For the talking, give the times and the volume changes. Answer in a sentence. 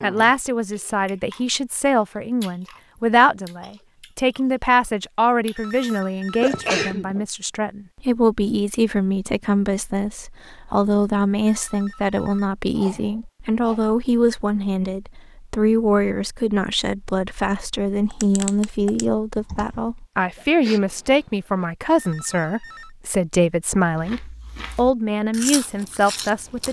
You can hear the talking from 0.0 to 26.6 s, at a steady volume.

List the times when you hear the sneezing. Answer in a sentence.
The sneezing can be heard from 6.4 to 7.2 s, from 12.8 to 13.9 s and from 20.4 to 21.6 s.